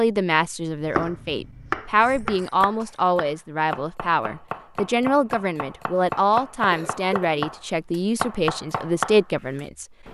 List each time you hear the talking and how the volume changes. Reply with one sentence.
The talking can be heard from 0.0 to 10.0 s, at a steady volume.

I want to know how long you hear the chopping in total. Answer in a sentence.
The chopping can be heard for 9 seconds in total.